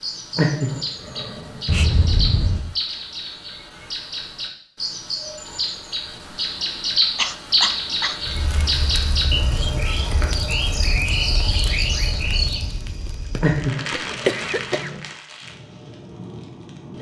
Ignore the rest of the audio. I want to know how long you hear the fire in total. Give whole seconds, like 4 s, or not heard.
9 s.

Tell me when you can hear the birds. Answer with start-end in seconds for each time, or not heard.
0.0-12.8.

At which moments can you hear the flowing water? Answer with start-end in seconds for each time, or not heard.
not heard.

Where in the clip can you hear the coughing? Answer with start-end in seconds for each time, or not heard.
1.6-2.8, 7.2-8.2, 13.3-14.9.